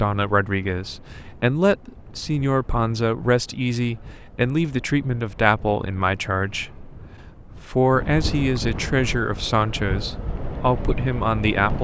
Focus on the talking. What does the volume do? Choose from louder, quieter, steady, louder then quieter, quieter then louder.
steady.